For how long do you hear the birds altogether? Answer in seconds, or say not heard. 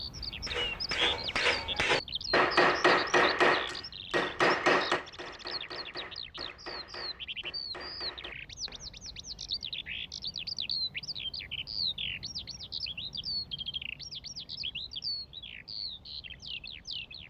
17 s.